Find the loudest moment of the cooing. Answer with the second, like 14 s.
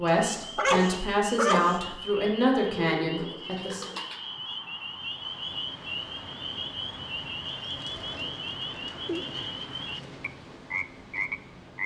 3 s.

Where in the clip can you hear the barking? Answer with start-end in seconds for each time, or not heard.
0.2-1.8.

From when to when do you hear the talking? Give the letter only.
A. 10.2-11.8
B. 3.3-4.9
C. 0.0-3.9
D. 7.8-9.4
C.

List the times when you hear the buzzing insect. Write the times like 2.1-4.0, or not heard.
not heard.